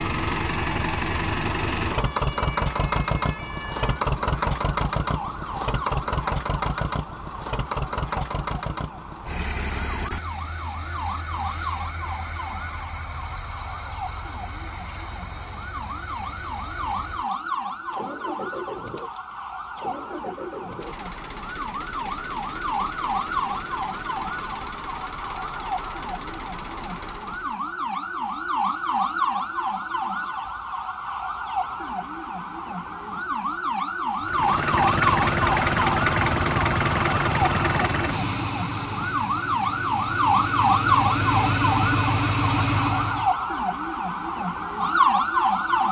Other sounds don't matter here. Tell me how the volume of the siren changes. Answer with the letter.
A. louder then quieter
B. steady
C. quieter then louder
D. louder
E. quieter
D.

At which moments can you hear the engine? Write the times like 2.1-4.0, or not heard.
0.0-27.6, 34.2-43.4.